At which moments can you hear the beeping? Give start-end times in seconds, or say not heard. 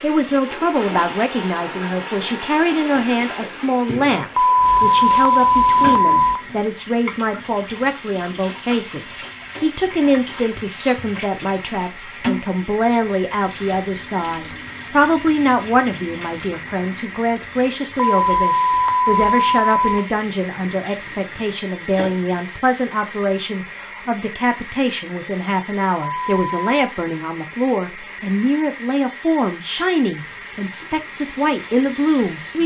4.3-6.5, 18.1-20.1, 26.1-26.7.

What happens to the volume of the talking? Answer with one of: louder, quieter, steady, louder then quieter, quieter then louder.
steady.